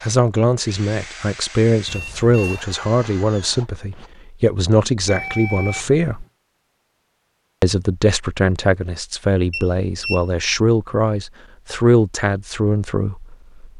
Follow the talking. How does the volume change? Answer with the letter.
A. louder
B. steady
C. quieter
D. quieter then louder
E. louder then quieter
B.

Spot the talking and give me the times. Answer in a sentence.
The talking can be heard from 0.0 to 6.2 s and from 7.6 to 13.7 s.